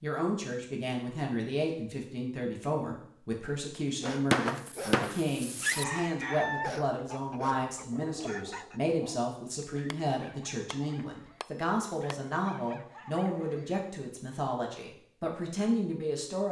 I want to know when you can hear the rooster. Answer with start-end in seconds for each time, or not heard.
5.7-8.8.